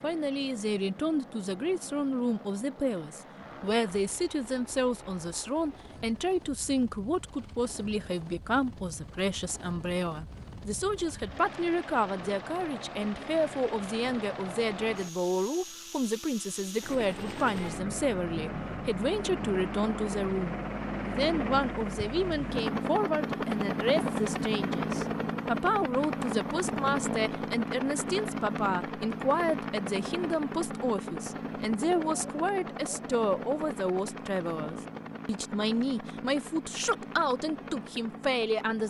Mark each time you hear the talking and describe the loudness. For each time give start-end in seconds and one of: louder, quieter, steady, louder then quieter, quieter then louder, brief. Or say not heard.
0.0-38.8 steady.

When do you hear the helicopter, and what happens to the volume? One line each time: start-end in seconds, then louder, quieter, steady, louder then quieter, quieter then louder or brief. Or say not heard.
0.0-38.8 louder then quieter.